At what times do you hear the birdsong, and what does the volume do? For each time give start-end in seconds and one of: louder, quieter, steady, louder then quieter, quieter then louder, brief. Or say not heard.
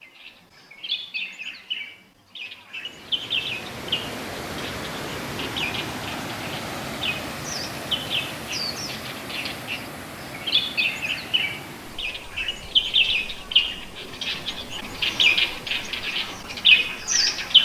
0.0-17.6 louder.